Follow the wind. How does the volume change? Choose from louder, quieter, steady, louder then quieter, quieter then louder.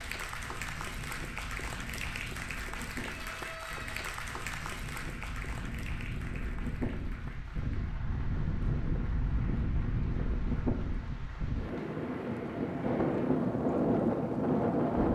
louder.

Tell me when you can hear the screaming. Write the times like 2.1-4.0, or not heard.
3.0-4.0.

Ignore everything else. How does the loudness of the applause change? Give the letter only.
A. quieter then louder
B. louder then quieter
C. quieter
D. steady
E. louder
C.